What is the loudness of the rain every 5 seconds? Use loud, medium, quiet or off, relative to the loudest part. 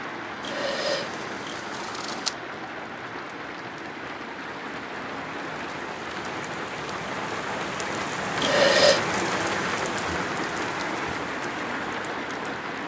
medium, loud, loud.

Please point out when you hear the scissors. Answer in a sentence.
You can hear the scissors from 0.4 to 2.4 s and from 8.4 to 9.0 s.